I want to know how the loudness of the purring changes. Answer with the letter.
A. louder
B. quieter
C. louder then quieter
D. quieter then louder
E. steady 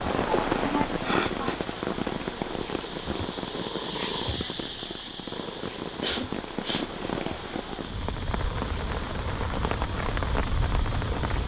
C.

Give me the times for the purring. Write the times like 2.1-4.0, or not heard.
0.0-11.4.